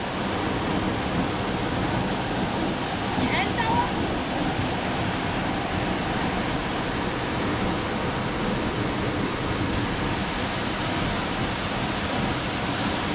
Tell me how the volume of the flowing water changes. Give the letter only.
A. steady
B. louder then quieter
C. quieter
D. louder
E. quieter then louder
A.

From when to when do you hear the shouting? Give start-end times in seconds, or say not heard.
3.1-3.9.